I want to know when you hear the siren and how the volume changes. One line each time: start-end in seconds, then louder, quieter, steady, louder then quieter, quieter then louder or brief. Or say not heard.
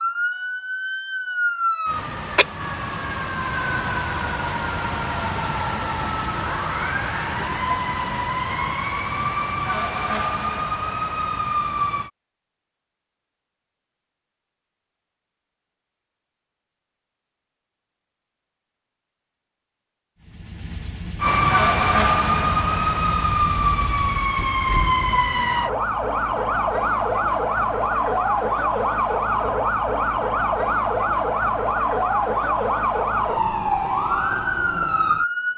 0.0-12.1 steady
21.2-35.5 steady.